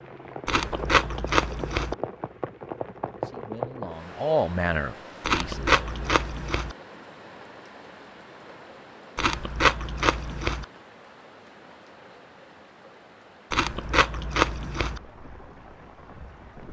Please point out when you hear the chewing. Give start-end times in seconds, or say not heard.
0.5-1.9, 5.2-6.8, 9.2-10.7, 13.5-15.0.